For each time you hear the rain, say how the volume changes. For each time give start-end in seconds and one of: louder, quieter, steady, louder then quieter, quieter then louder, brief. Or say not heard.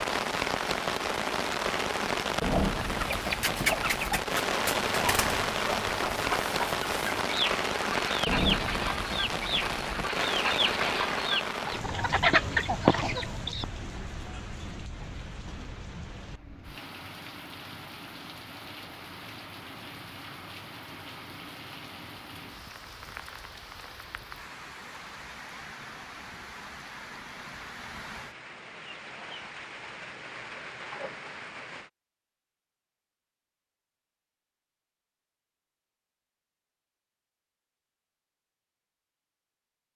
0.0-31.9 quieter.